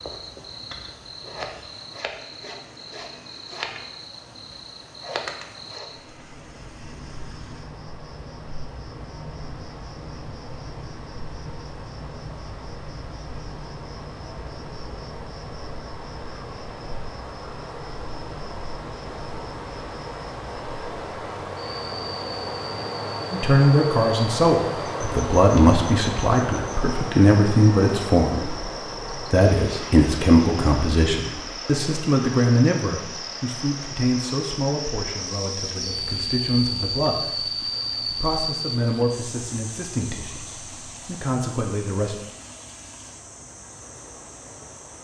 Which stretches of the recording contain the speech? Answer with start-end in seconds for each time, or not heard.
23.3-42.1.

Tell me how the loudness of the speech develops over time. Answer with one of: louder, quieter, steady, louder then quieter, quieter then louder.
quieter.